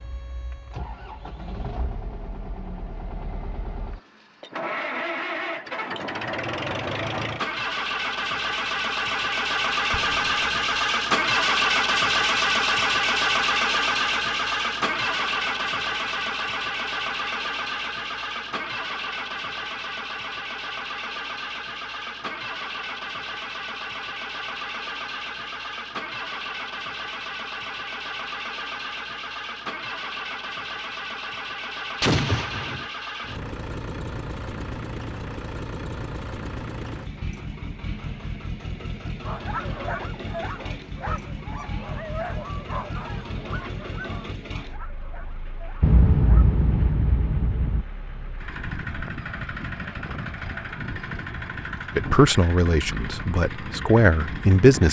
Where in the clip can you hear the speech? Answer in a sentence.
You can hear the speech from 52.0 to 54.8 s.